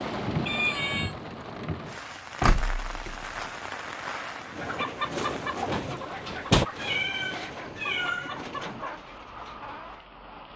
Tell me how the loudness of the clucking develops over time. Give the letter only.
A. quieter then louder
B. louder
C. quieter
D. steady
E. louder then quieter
C.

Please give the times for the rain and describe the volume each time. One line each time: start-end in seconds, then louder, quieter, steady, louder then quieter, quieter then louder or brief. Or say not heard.
0.0-10.5 quieter.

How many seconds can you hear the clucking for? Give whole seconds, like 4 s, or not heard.
6 s.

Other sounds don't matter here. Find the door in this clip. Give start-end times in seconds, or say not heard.
2.4-3.2, 5.7-6.7.